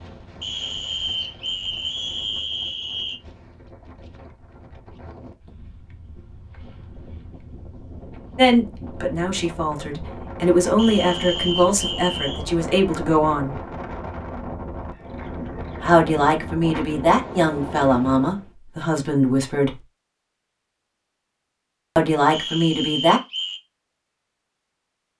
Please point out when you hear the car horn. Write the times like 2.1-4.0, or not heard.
not heard.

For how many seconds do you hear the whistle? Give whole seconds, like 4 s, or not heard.
6 s.